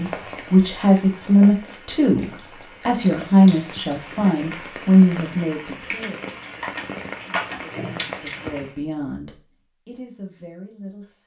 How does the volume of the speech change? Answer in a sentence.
The loudness of the speech goes down.